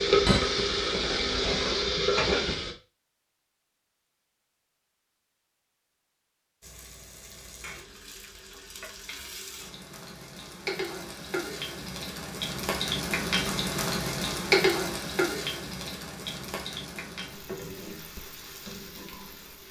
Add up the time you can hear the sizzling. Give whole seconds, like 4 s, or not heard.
16 s.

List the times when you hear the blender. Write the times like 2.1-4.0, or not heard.
0.1-1.9.